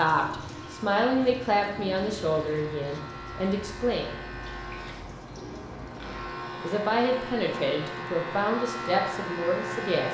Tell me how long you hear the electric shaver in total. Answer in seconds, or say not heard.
10 s.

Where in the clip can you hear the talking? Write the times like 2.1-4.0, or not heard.
0.0-4.1, 6.6-10.0.